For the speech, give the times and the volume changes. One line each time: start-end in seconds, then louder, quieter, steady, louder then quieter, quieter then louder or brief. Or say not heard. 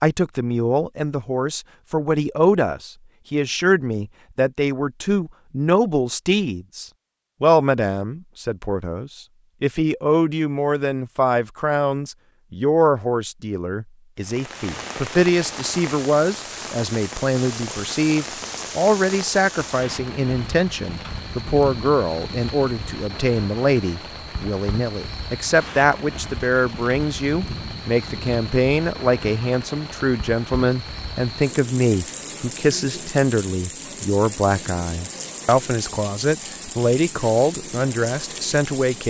0.0-39.0 steady.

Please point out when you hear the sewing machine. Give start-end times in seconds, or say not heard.
not heard.